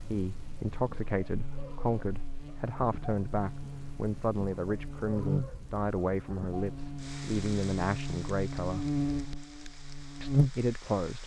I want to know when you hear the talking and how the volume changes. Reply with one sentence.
The talking can be heard from 0.0 to 8.8 s, at a steady volume; and briefly from 10.2 to 11.2 s.